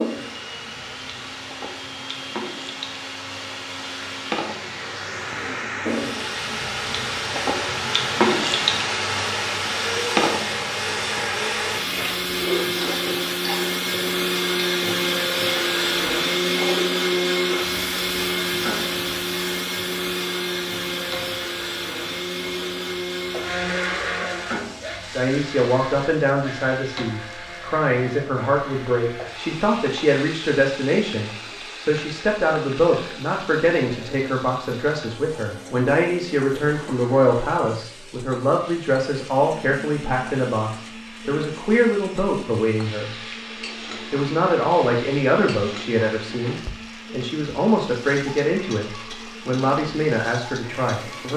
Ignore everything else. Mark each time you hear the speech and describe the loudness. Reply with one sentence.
You can hear the speech from 25.1 to 51.3 s, at a steady volume.